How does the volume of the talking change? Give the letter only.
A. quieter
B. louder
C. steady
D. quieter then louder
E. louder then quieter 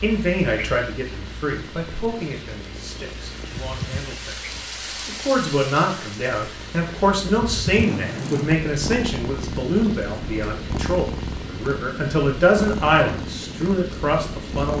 B.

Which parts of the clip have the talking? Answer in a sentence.
The talking can be heard from 0.0 to 14.7 s.